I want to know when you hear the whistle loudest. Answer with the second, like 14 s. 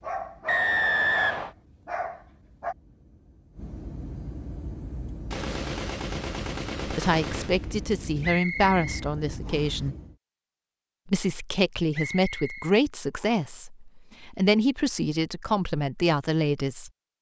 1 s.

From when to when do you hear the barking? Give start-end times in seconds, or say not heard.
0.0-2.8.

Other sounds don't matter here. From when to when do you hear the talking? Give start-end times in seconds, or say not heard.
6.8-9.9, 11.1-16.9.